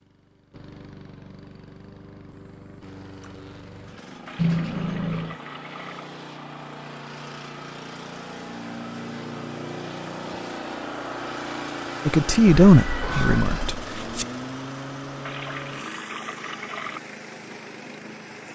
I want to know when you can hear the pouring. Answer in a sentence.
The pouring can be heard from 4.2 to 6.1 s and from 15.2 to 17.0 s.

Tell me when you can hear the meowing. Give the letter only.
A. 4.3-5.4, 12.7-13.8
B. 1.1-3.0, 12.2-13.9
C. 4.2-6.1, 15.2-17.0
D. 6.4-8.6
A.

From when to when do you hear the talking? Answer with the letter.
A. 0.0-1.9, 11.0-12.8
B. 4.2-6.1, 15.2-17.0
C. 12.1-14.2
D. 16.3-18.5
C.